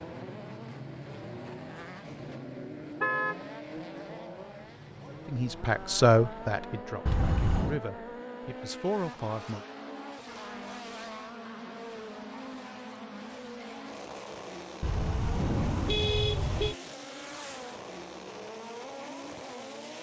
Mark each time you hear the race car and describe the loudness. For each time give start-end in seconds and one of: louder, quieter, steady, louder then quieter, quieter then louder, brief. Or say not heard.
0.0-19.9 steady.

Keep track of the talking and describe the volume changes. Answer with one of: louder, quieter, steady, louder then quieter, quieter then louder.
quieter then louder.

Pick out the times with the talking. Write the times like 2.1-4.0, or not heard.
5.2-9.7.